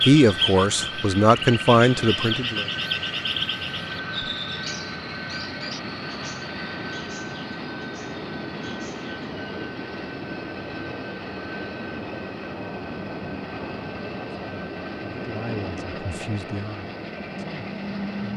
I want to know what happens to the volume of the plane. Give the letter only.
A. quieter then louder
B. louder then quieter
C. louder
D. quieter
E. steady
E.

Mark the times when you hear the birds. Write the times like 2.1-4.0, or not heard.
0.0-9.3.